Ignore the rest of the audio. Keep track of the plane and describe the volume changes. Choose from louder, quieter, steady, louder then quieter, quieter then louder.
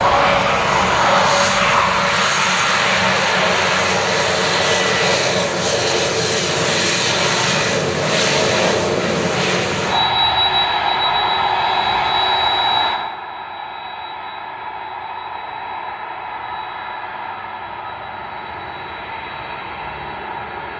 quieter.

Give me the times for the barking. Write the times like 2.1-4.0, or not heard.
0.0-2.0.